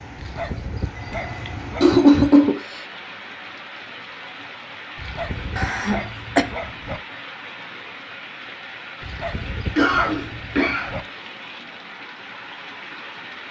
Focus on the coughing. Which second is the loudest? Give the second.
2 s.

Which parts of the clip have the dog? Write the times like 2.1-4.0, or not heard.
0.1-1.9, 5.0-7.0, 9.0-11.1.